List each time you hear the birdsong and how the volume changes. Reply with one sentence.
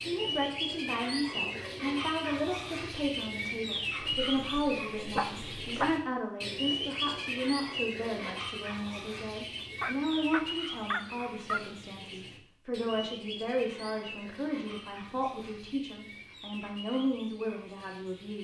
You can hear the birdsong from 0.0 to 18.3 s, getting quieter.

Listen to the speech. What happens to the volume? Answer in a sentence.
The loudness of the speech stays about the same.